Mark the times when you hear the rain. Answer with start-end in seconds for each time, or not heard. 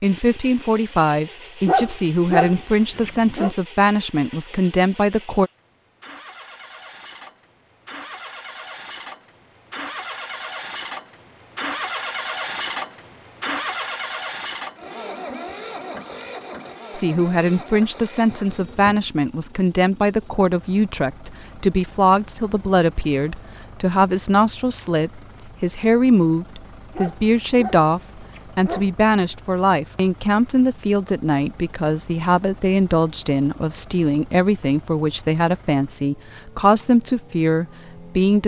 not heard.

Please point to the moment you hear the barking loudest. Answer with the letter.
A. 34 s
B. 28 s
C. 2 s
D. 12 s
C.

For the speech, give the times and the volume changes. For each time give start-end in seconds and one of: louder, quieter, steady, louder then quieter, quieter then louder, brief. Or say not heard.
0.0-5.5 steady
16.9-38.4 steady.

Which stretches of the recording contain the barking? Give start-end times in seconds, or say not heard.
1.6-3.5, 26.9-28.9.